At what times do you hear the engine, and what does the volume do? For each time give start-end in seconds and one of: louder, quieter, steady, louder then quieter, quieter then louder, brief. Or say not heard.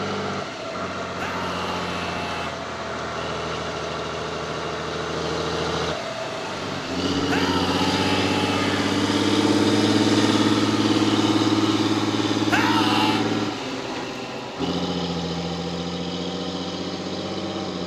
0.0-17.8 louder then quieter.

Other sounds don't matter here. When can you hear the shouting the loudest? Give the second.
13 s.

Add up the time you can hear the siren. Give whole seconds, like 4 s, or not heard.
not heard.